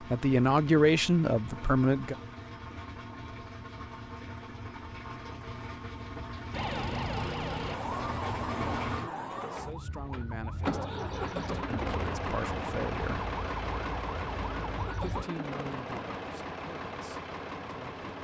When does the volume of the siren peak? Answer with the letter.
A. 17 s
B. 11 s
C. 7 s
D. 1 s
C.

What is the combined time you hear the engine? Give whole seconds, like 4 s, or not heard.
18 s.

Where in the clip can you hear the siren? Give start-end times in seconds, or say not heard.
6.5-15.2.